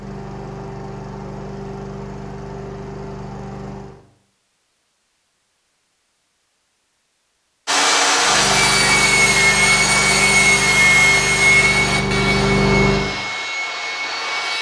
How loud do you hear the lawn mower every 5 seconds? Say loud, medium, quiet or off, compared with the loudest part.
medium, medium, loud.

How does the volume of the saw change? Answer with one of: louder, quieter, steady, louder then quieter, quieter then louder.
quieter.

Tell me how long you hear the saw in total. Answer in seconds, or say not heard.
7 s.